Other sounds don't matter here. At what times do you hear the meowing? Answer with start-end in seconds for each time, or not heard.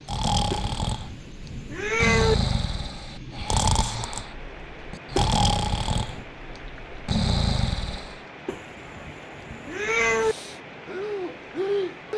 0.5-2.4, 5.2-6.2, 8.4-10.3.